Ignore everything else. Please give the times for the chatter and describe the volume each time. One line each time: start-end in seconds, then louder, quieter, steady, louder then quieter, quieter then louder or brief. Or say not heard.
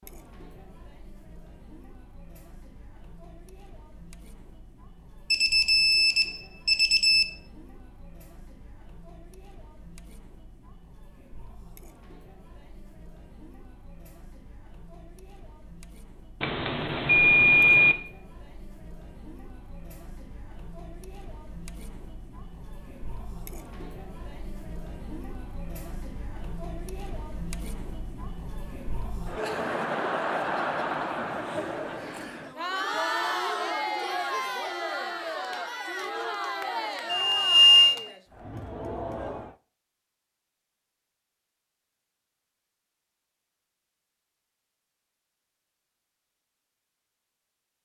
0.0-39.5 louder.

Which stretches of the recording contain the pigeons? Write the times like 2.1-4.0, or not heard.
not heard.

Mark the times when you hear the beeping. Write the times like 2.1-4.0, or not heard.
5.3-7.2, 16.4-17.9, 37.1-38.0.